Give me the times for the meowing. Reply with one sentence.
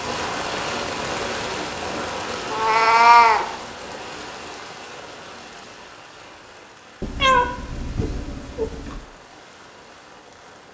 You can hear the meowing from 2.5 to 3.5 s and from 7.0 to 9.0 s.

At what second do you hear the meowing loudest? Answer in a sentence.
The loudest moment of the meowing is at 3 seconds.